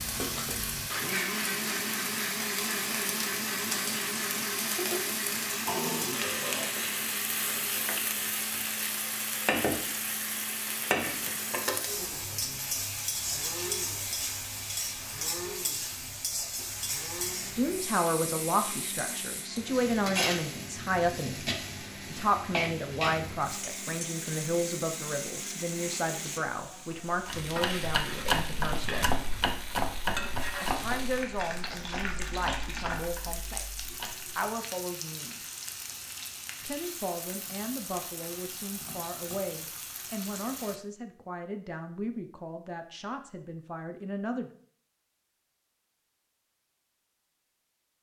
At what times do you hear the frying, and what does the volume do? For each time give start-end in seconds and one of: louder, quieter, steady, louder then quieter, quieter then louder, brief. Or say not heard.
0.0-40.8 quieter.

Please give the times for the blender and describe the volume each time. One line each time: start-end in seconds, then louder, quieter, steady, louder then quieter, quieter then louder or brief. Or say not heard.
0.0-26.4 quieter.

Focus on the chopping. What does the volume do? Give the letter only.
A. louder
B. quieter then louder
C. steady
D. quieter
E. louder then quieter
D.